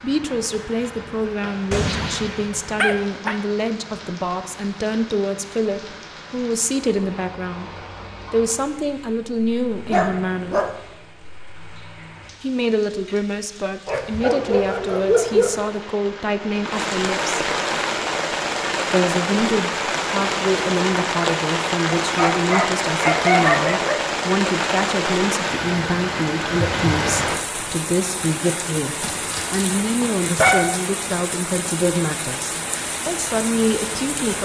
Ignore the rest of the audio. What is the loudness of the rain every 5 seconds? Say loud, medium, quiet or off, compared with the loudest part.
quiet, quiet, quiet, loud, loud, loud, medium.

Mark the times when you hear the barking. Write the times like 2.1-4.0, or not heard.
1.7-3.4, 9.9-10.7, 13.8-15.6, 21.9-24.0, 29.0-30.7.